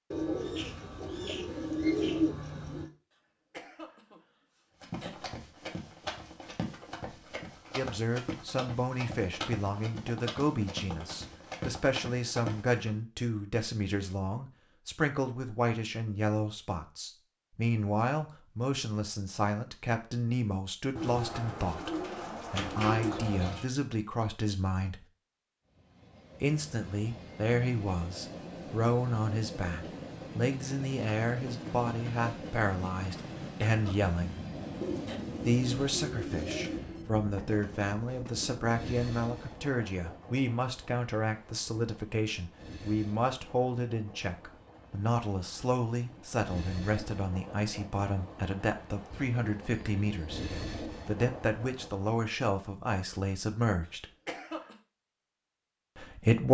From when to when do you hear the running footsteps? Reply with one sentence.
The running footsteps can be heard from 4.8 to 12.9 s.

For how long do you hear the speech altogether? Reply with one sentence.
The speech can be heard for 44 seconds in total.